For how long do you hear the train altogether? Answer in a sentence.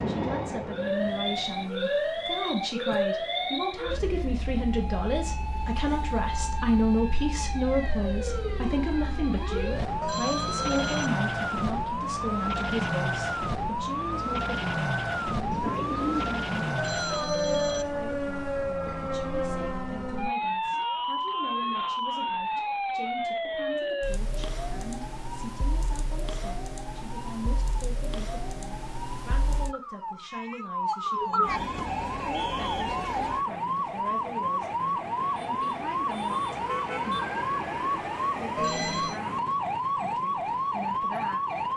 You can hear the train for 2 seconds altogether.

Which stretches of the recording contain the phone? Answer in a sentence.
The phone can be heard from 10.0 to 11.1 s, from 16.8 to 17.9 s and from 38.5 to 39.2 s.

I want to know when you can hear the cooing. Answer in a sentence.
You can hear the cooing from 15.5 to 16.8 s.